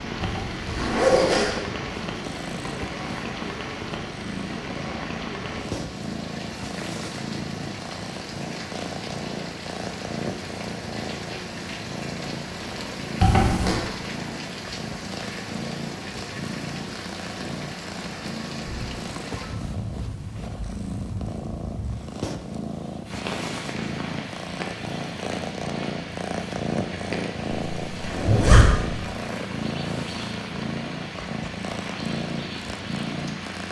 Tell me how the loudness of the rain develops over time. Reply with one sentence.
The volume of the rain stays about the same.